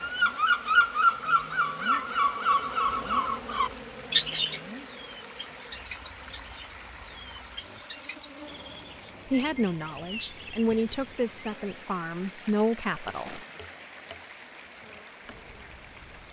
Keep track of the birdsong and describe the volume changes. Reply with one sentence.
The volume of the birdsong goes down.